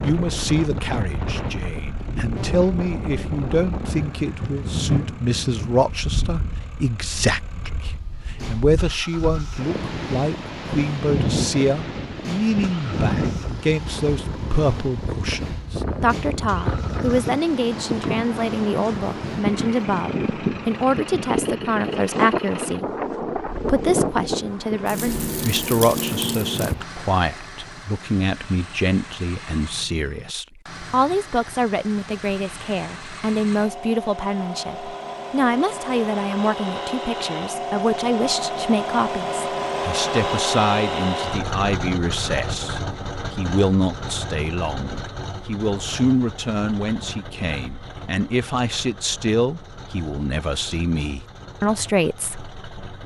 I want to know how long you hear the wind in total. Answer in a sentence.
You can hear the wind for 27 seconds altogether.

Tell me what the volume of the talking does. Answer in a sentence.
The volume of the talking stays about the same.